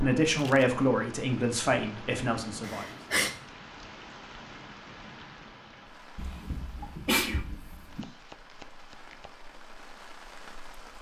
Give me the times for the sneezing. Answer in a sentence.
The sneezing can be heard from 2.6 to 3.3 s and from 6.2 to 8.1 s.